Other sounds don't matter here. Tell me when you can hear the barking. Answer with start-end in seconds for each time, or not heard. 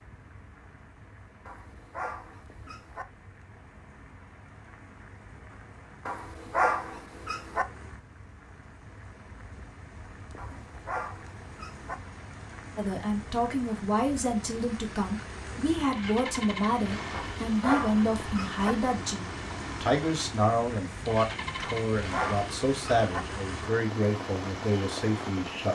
1.4-3.0, 6.0-7.7, 10.3-11.9, 17.1-18.8, 21.6-23.2.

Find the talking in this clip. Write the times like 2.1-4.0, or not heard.
12.8-25.7.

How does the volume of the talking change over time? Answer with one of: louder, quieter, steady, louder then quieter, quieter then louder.
steady.